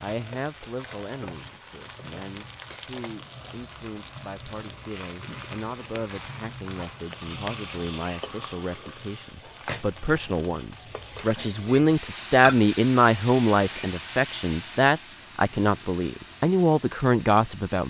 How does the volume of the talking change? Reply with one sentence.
The volume of the talking goes up.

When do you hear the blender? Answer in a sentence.
The blender can't be heard in this clip.